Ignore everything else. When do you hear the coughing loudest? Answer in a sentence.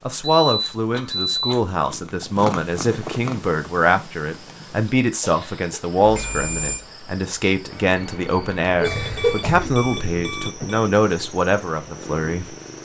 The volume of the coughing peaks at 9 seconds.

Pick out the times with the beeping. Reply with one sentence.
The beeping can be heard from 0.5 to 1.6 s, from 6.0 to 6.8 s and from 8.8 to 10.7 s.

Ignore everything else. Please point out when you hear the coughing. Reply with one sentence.
The coughing can be heard from 0.9 to 1.8 s, from 5.2 to 6.0 s and from 8.8 to 9.8 s.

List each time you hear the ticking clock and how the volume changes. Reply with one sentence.
You can't hear the ticking clock here.